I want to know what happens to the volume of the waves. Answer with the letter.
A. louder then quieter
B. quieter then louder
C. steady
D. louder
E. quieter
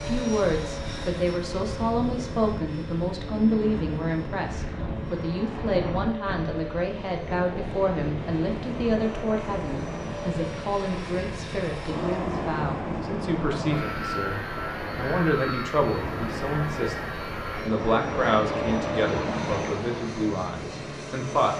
D.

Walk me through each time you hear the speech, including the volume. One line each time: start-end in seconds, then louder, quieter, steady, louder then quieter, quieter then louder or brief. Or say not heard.
0.1-21.5 steady.